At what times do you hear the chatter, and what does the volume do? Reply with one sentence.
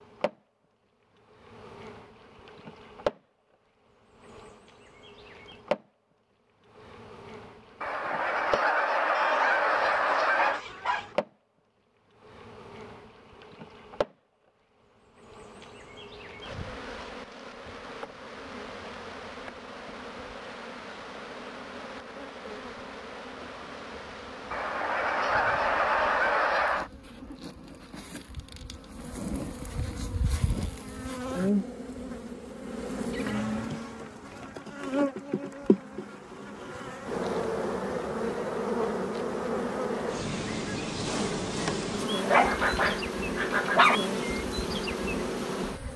The chatter can't be heard in this clip.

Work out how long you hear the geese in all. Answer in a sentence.
The geese can be heard for 5 seconds in total.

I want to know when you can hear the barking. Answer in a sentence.
You can hear the barking from 9.1 to 11.2 s and from 42.1 to 44.0 s.